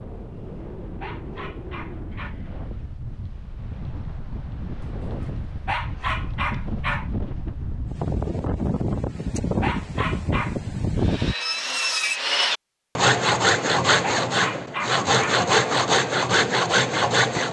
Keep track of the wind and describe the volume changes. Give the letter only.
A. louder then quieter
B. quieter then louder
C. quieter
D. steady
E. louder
E.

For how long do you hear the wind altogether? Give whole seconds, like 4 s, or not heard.
11 s.